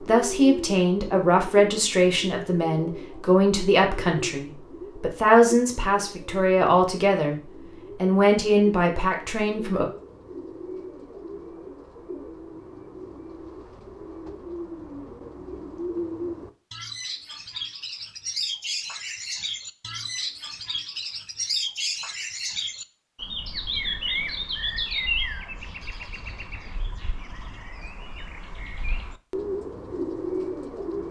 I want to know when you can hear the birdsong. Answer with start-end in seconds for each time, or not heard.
0.0-31.0.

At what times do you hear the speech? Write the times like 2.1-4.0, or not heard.
0.1-7.4, 8.0-9.8.